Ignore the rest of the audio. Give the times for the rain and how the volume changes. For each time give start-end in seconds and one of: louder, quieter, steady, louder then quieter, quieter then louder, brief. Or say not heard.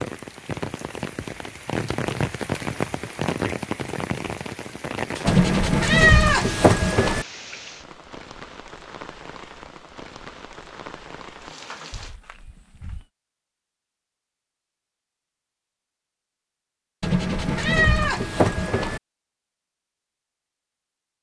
0.0-12.2 quieter.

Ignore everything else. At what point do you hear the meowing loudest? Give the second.
6 s.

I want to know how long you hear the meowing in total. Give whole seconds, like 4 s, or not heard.
4 s.